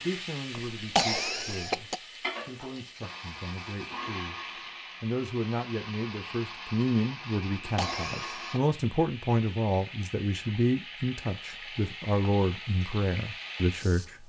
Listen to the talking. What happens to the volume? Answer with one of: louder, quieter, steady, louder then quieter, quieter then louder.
louder.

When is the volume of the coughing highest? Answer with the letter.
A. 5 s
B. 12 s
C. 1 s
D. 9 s
C.